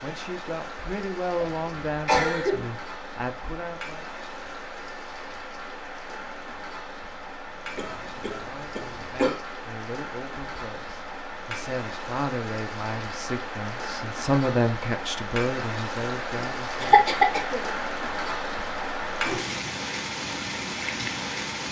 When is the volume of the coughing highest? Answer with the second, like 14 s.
17 s.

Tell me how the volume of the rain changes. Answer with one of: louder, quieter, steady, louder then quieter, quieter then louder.
louder.